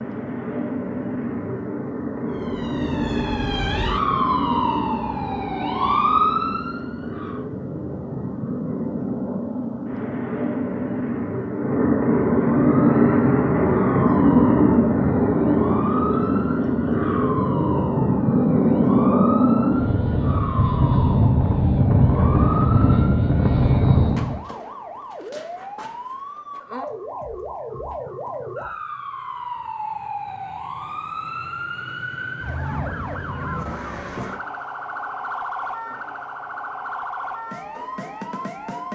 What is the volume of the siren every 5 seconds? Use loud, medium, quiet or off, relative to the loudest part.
loud, loud, medium, medium, medium, medium, medium, medium.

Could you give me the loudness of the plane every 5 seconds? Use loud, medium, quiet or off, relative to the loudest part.
medium, medium, loud, loud, loud, off, off, off.